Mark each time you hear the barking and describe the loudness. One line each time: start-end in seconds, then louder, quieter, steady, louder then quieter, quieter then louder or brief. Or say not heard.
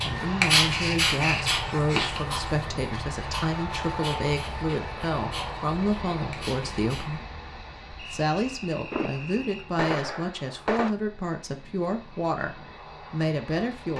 0.0-7.2 quieter.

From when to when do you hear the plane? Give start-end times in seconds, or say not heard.
0.0-13.9.